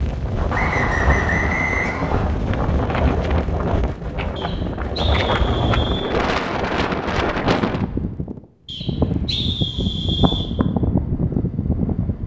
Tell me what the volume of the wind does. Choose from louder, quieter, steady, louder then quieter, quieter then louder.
steady.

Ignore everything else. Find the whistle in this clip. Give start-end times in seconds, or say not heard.
0.5-2.2, 4.3-6.1, 8.7-10.5.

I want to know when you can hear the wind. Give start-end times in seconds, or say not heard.
0.0-12.2.